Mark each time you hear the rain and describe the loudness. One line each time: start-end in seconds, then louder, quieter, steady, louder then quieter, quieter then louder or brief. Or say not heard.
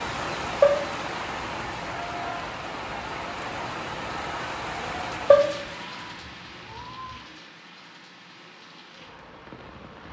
0.0-10.0 quieter.